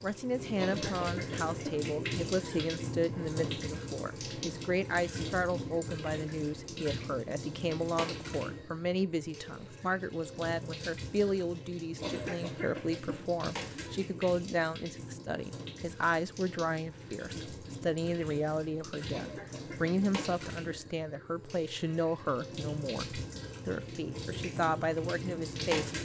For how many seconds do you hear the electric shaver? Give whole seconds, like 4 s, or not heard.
not heard.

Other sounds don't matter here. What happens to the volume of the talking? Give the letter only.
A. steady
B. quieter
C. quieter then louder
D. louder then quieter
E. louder
A.